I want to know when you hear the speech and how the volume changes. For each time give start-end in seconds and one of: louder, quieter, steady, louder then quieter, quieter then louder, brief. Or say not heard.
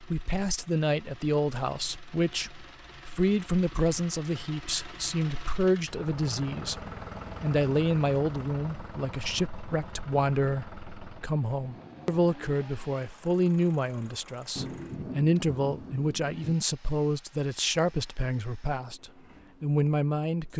0.0-20.5 steady.